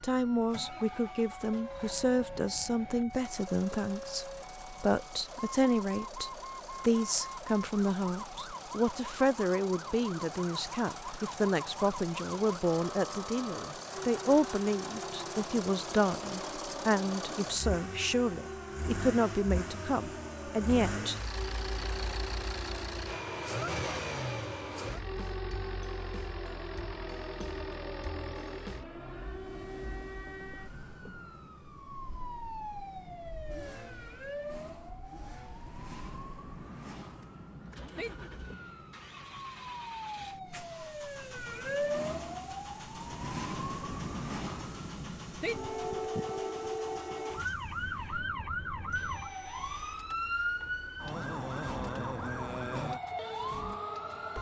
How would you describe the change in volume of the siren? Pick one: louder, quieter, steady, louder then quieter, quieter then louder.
louder.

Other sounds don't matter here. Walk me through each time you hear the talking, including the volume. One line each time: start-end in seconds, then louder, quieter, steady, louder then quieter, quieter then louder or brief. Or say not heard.
0.0-21.1 steady.